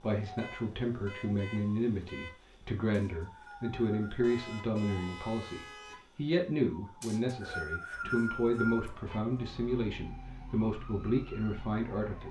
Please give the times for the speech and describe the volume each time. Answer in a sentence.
You can hear the speech from 0.0 to 12.2 s, at a steady volume.